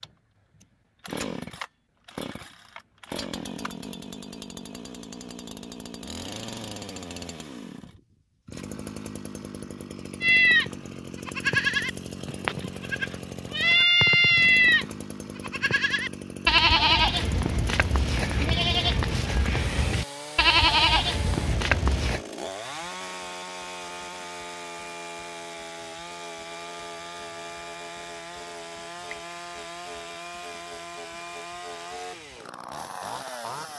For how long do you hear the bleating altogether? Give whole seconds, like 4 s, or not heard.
12 s.